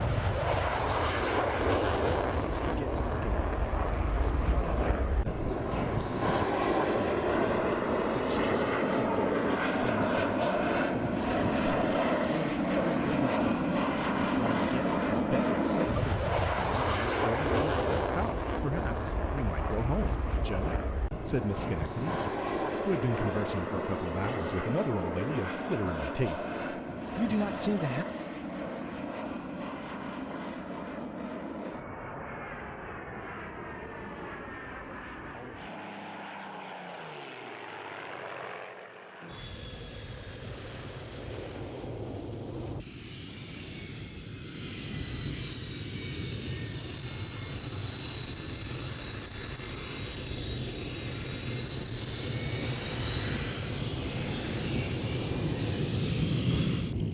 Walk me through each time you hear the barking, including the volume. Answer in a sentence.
The barking can't be heard in this clip.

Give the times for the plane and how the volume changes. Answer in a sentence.
You can hear the plane from 0.0 to 57.0 s, getting quieter then louder.